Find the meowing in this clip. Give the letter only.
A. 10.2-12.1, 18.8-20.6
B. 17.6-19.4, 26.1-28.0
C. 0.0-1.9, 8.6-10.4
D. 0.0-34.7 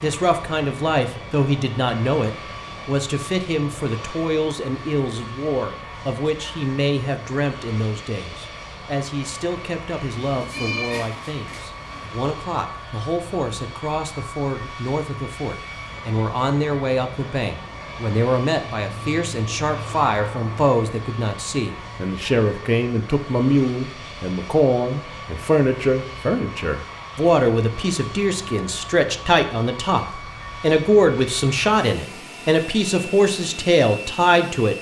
A.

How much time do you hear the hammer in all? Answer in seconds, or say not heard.
not heard.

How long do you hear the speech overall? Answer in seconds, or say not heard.
35 s.